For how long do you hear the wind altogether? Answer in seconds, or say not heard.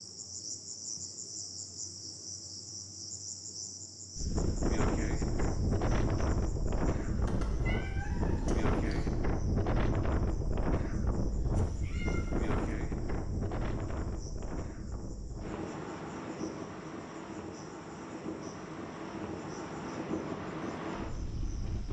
18 s.